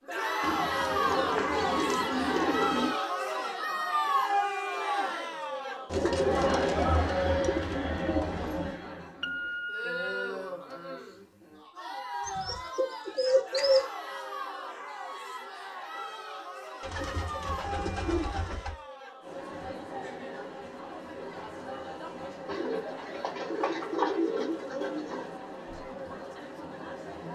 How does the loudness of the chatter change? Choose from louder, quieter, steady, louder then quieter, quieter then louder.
quieter.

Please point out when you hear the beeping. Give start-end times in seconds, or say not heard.
9.2-10.3.